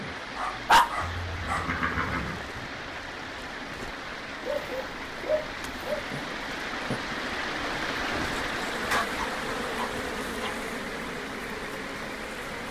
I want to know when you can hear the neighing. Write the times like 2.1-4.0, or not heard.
1.0-2.5.